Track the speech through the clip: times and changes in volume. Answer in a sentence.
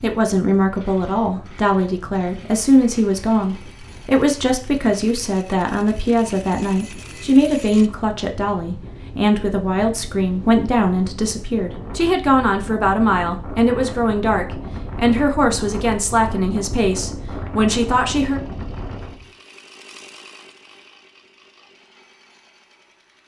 The speech can be heard from 0.0 to 18.4 s, at a steady volume.